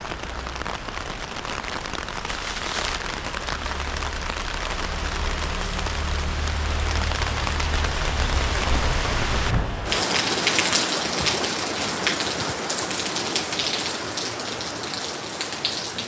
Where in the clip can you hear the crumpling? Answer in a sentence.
You can hear the crumpling from 2.2 to 3.0 s.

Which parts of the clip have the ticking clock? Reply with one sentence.
You can't hear the ticking clock here.